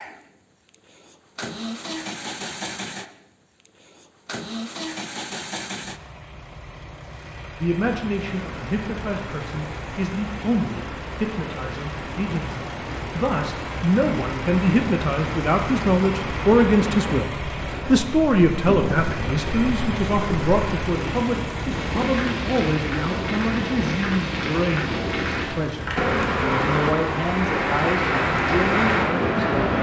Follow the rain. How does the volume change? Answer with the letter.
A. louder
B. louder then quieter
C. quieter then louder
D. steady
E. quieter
A.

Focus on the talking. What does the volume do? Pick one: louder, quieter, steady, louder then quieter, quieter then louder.
louder then quieter.